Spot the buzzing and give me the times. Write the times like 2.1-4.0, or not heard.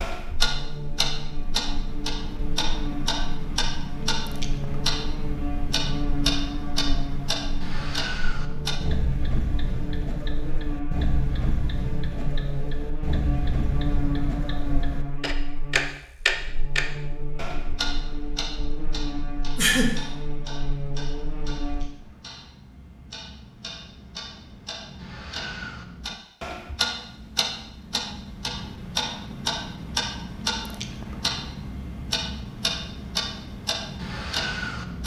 0.0-21.9.